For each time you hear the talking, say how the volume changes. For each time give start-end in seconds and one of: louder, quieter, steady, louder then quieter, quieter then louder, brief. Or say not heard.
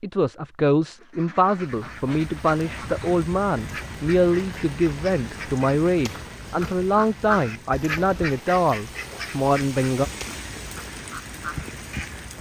0.0-10.1 steady.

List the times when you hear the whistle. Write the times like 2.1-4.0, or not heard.
not heard.